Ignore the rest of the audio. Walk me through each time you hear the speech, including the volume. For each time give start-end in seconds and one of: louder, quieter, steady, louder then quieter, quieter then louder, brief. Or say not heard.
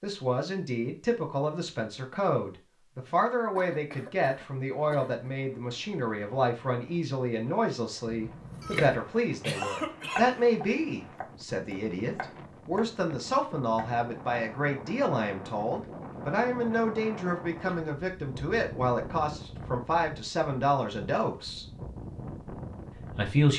0.0-21.6 steady
22.9-23.5 brief.